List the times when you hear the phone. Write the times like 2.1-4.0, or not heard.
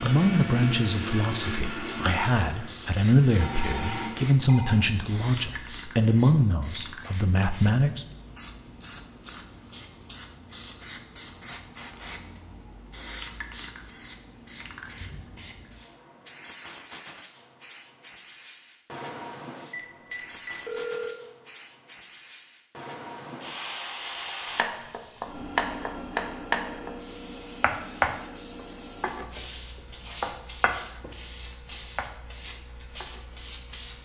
3.4-5.2, 19.7-21.1.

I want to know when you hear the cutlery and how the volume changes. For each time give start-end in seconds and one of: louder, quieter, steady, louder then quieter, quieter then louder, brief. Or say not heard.
not heard.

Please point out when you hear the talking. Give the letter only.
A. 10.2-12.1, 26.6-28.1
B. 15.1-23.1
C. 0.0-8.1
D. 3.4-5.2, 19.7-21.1
C.